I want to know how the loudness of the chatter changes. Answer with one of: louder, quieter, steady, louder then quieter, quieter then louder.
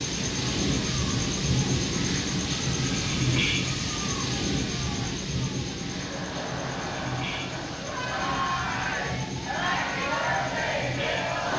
louder.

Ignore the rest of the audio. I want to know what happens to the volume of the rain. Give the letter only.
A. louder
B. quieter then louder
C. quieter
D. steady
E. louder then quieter
C.